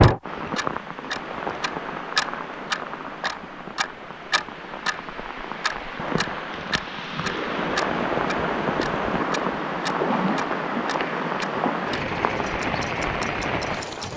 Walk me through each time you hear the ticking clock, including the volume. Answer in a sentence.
The ticking clock can be heard from 0.0 to 14.1 s, getting quieter.